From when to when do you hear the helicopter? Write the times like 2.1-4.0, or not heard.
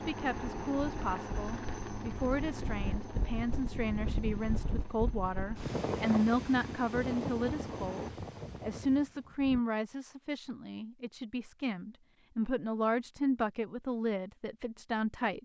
0.0-8.1.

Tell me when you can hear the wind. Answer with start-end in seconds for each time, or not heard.
0.1-9.6.